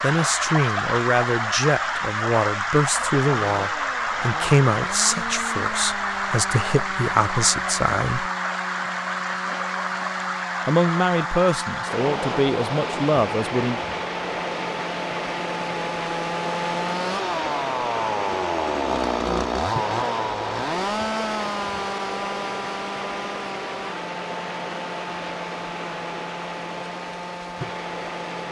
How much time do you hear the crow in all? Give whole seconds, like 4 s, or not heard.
not heard.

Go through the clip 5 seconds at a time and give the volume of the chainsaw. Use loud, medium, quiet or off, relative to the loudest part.
medium, medium, medium, loud, loud, medium.